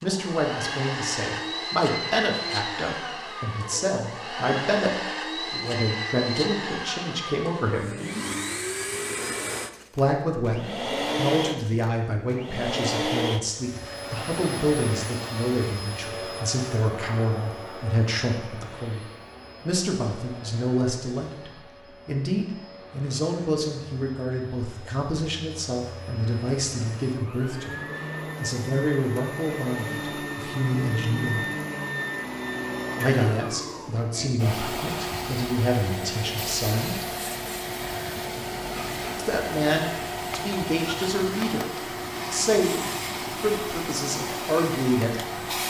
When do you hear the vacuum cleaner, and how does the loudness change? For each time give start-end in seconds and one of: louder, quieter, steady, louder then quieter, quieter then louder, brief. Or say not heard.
0.0-45.6 quieter then louder.